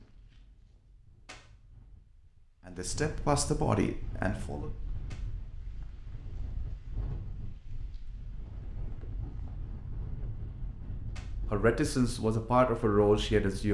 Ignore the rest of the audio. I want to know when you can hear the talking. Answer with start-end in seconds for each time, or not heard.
2.6-4.7, 11.5-13.6.